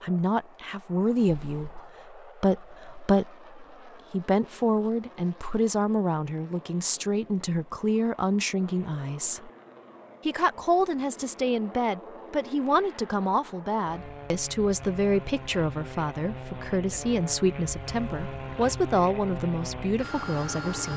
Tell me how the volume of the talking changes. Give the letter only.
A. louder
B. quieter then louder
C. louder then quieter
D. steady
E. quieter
D.